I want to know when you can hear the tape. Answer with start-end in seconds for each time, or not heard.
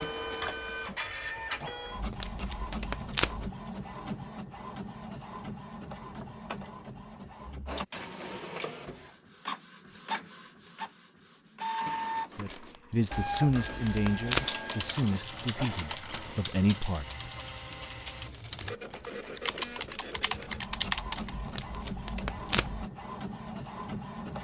1.9-3.5, 13.1-14.4, 21.3-22.9.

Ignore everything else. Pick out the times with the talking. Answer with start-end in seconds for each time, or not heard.
12.3-17.1.